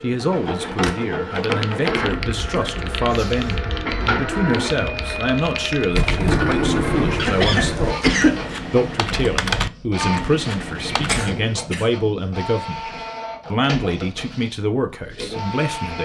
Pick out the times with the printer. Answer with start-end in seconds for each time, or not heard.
0.0-15.9.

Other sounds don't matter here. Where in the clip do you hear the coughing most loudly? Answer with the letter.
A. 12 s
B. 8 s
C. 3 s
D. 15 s
B.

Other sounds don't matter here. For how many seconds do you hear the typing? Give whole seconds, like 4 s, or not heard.
10 s.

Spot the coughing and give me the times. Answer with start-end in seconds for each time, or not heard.
1.9-3.6, 7.2-8.6, 11.1-11.9.